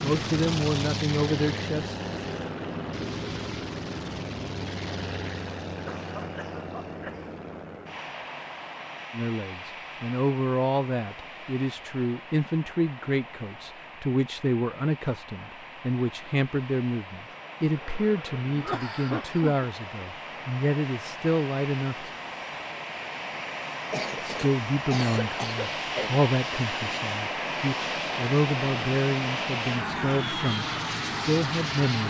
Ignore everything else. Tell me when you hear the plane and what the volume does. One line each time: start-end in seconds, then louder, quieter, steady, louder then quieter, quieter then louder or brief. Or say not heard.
0.0-32.0 quieter then louder.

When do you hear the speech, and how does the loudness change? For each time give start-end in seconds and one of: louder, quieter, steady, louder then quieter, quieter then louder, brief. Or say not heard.
0.0-1.9 brief
9.1-22.1 steady
24.2-32.0 steady.